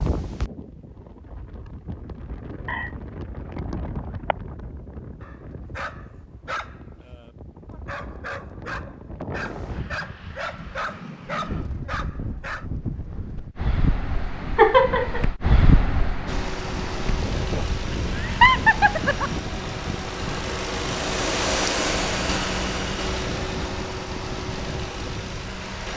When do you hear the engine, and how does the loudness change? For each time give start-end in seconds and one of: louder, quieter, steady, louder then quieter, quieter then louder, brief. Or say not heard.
16.2-25.9 louder then quieter.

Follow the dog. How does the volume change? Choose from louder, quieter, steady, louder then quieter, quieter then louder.
quieter then louder.